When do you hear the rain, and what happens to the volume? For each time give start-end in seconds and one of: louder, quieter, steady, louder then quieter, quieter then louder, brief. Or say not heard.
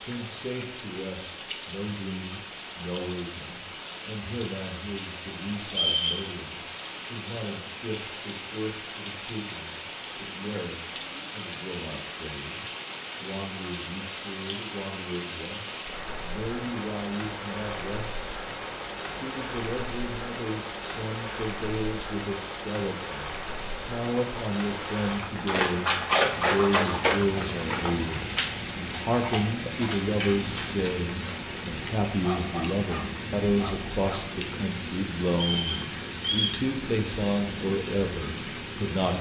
0.0-39.1 steady.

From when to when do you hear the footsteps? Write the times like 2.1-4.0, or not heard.
not heard.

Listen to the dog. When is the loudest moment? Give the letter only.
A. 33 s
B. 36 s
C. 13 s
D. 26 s
D.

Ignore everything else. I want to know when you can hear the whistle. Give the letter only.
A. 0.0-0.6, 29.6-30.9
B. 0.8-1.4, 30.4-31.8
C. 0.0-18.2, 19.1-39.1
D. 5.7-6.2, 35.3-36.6
D.